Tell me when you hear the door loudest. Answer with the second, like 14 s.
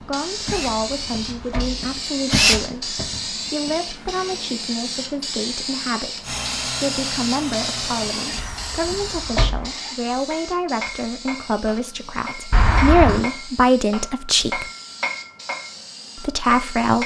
13 s.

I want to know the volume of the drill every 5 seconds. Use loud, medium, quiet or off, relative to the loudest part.
loud, medium, off, off.